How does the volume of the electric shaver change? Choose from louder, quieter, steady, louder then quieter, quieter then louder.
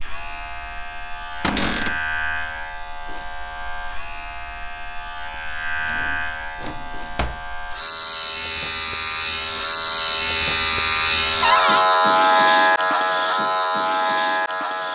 louder.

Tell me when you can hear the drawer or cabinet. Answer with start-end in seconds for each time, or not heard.
1.4-2.0, 5.8-7.3, 11.4-11.8.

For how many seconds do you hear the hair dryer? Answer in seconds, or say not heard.
not heard.